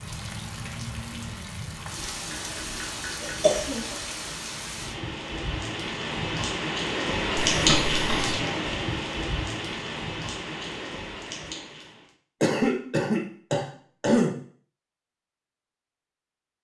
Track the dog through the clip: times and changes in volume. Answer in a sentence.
You can't hear the dog here.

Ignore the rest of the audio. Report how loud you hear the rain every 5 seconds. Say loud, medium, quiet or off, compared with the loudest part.
medium, loud, medium, off.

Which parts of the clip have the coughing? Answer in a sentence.
You can hear the coughing from 2.3 to 3.9 s, from 7.5 to 8.3 s and from 12.4 to 14.3 s.